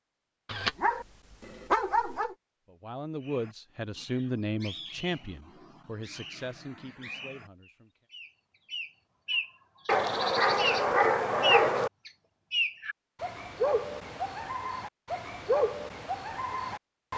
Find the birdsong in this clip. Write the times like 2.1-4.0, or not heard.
3.2-17.1.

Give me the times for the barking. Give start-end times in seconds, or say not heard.
0.5-2.4, 9.8-11.9.